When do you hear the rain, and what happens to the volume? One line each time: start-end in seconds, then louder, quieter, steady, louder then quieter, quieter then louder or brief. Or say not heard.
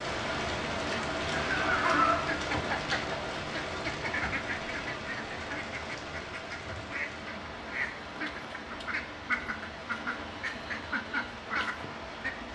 0.0-12.4 quieter.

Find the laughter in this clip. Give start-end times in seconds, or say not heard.
1.3-2.2.